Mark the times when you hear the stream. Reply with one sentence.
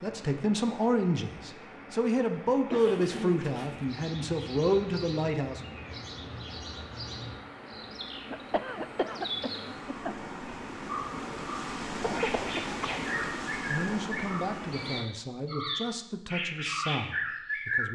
You can hear the stream from 0.0 to 15.1 s.